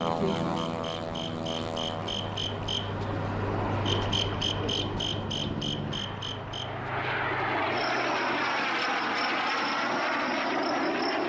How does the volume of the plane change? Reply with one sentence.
The loudness of the plane goes down, then up.